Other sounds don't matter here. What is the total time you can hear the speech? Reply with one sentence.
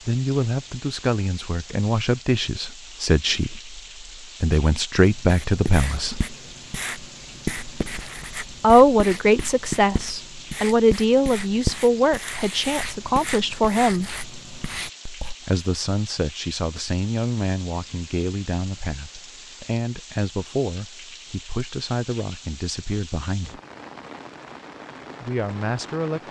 You can hear the speech for 21 seconds altogether.